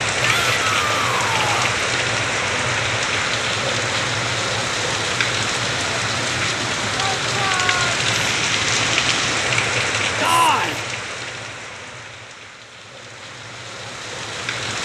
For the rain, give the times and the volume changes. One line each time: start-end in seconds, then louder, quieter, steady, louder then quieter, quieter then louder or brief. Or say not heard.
0.0-14.7 quieter.